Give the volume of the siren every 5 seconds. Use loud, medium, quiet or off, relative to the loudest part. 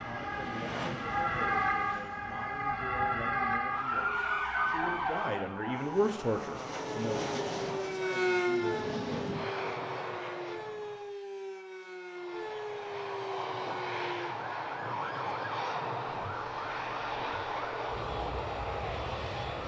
loud, loud, medium, medium.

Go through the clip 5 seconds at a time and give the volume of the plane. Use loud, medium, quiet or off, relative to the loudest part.
medium, loud, loud, loud.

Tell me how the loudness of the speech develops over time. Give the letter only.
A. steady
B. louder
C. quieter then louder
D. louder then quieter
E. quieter
D.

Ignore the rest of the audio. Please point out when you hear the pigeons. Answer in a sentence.
The pigeons can't be heard in this clip.